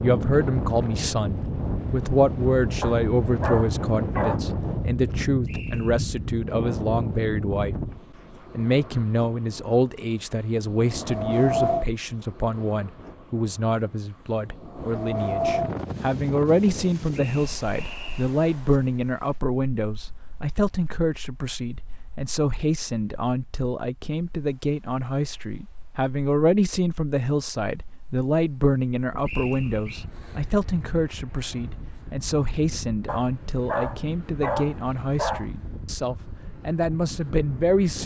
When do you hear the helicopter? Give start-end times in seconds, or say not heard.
not heard.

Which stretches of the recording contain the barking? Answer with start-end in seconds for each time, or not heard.
2.8-4.4, 33.0-35.5.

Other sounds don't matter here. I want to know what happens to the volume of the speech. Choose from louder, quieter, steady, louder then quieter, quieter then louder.
steady.